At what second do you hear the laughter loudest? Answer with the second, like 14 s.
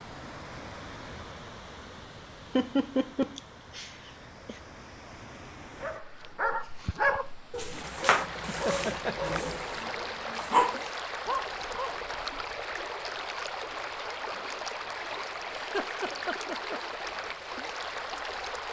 3 s.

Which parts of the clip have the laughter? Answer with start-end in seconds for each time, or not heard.
2.5-4.5, 8.4-9.3, 15.6-16.8.